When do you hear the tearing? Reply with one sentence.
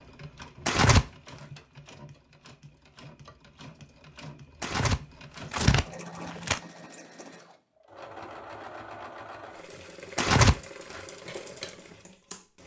The tearing can be heard from 0.7 to 1.1 s, from 4.6 to 6.6 s and from 10.2 to 11.0 s.